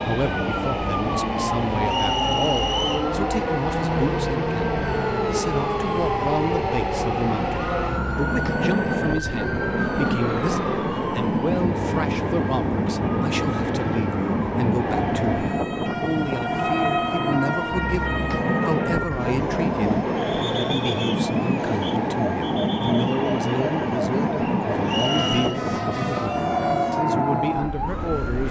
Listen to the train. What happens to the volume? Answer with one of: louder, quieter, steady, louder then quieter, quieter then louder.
steady.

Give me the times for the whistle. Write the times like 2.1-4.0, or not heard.
1.9-3.1, 24.9-25.6.